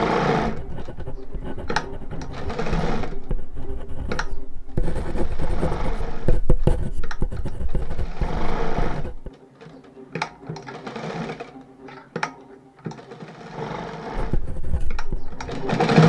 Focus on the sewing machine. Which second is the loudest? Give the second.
16 s.